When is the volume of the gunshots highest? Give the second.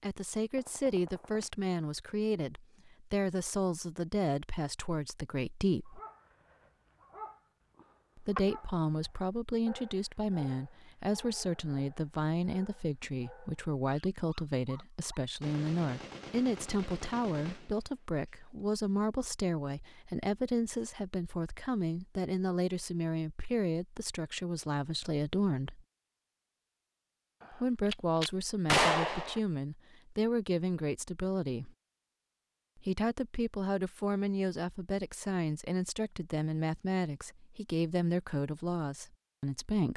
29 s.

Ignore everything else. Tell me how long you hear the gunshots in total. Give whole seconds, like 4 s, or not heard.
5 s.